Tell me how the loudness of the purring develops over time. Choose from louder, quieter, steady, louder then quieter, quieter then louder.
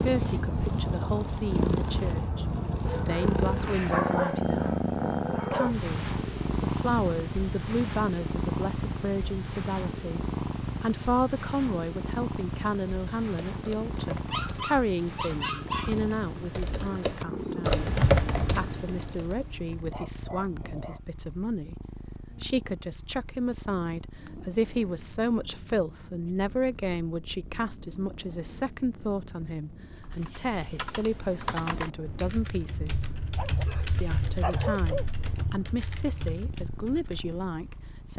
quieter.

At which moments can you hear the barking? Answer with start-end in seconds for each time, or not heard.
2.9-5.8, 14.3-15.9, 19.8-21.0, 33.4-35.0.